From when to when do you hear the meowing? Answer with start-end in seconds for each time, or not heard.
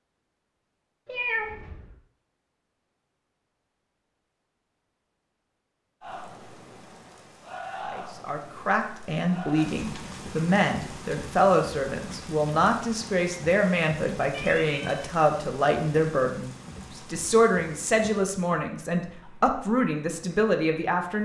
1.1-1.9, 14.3-15.0.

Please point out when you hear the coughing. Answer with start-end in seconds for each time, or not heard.
not heard.